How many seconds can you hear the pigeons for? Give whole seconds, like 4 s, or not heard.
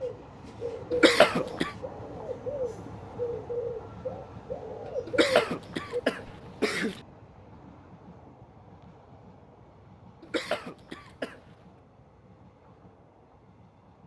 6 s.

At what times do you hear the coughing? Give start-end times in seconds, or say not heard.
0.9-1.7, 5.0-7.0, 10.2-11.4.